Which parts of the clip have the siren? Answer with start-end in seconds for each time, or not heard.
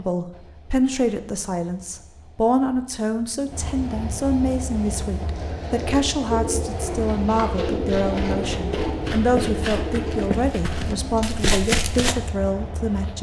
not heard.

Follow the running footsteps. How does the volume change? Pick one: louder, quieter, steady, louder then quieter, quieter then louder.
louder.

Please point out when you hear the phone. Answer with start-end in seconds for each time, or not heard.
not heard.